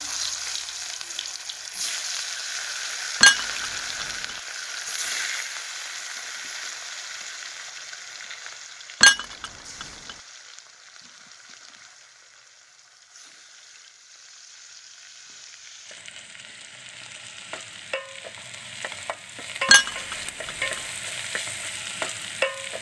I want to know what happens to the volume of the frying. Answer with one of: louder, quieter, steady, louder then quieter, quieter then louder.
quieter then louder.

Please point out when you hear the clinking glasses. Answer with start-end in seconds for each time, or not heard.
3.2-4.0, 9.0-9.8, 19.6-20.5.